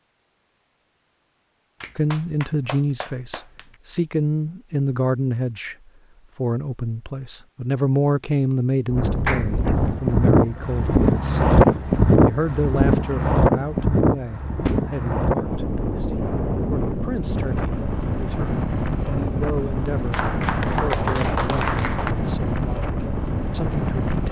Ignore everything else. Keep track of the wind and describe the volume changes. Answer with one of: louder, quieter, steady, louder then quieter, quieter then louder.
quieter.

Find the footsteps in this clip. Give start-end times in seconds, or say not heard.
not heard.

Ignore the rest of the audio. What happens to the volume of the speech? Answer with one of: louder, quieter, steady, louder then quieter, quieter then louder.
quieter.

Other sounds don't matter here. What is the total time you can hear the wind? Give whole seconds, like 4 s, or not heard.
15 s.